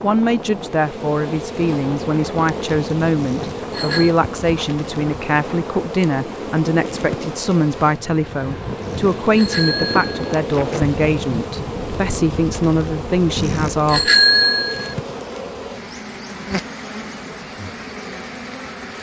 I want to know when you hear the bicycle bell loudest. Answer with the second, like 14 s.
14 s.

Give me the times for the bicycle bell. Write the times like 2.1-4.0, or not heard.
3.2-4.1, 8.8-10.4, 13.3-14.9.